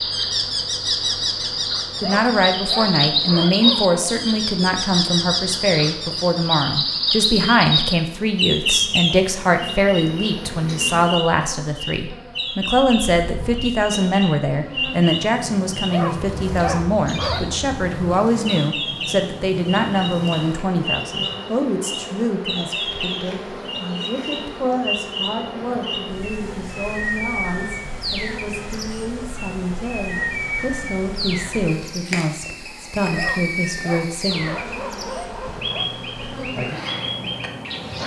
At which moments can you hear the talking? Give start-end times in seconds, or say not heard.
2.0-34.5.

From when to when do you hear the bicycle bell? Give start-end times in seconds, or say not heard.
not heard.